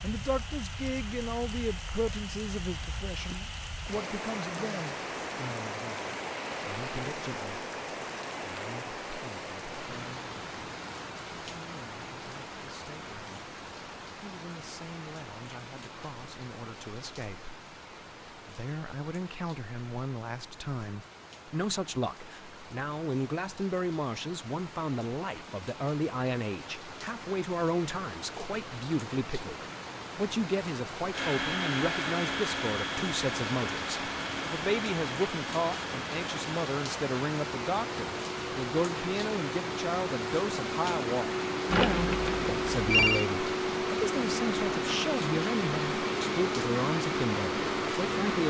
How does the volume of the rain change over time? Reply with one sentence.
The volume of the rain goes down, then up.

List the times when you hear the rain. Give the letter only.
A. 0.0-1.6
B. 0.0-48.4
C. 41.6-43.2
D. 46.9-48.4
B.